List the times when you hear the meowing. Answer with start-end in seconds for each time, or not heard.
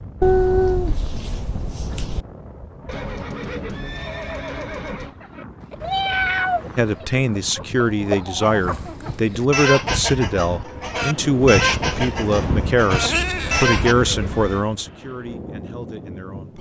0.2-2.2, 5.8-7.0, 13.0-14.7.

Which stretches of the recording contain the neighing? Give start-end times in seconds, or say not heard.
2.9-5.2, 13.4-14.7.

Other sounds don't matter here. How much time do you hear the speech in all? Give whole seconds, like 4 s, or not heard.
10 s.